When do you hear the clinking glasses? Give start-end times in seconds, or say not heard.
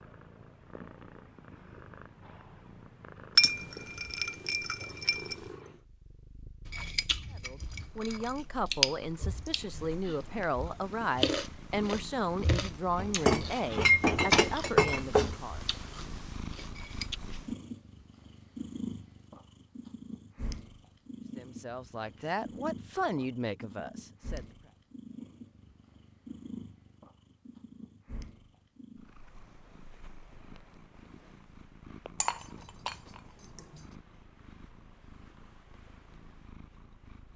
3.4-5.3, 12.9-15.3, 32.2-33.0.